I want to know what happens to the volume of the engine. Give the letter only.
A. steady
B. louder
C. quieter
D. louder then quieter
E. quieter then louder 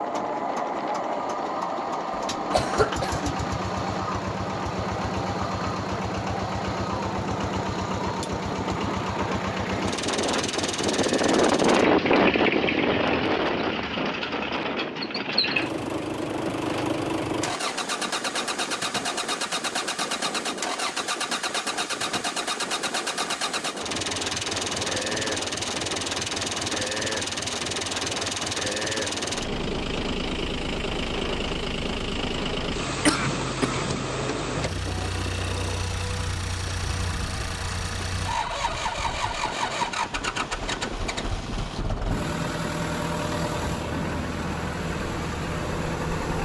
A.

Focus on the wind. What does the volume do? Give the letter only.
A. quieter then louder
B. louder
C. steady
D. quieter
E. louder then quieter
E.